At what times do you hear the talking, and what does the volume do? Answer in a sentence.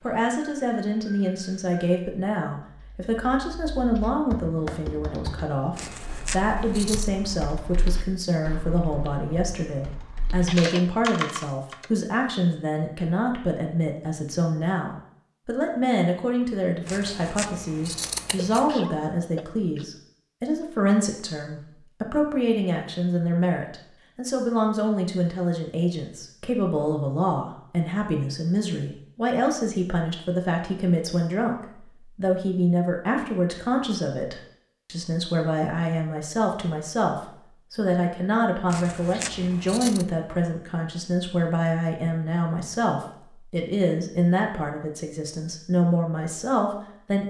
The talking can be heard from 0.0 to 47.2 s, at a steady volume.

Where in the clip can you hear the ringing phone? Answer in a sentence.
You can't hear the ringing phone here.